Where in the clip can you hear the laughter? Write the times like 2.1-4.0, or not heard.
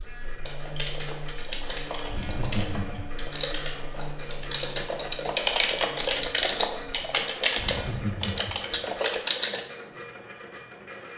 2.0-3.1, 7.5-9.2.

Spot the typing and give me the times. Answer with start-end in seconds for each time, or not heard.
0.5-9.7.